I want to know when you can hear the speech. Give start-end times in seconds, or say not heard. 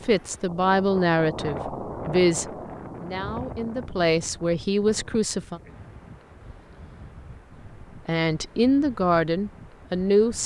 0.0-5.6, 8.1-10.4.